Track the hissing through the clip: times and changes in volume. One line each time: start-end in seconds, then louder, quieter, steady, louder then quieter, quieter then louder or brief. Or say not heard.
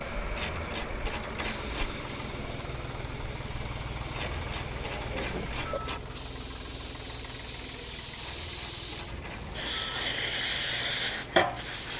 0.0-11.9 louder.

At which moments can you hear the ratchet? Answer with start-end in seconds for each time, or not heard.
0.3-1.9, 4.1-6.0, 8.2-10.1.